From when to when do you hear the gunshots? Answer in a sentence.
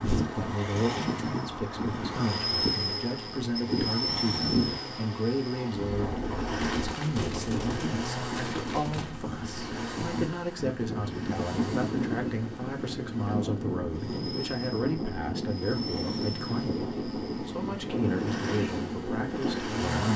The gunshots can be heard from 6.6 to 9.2 s.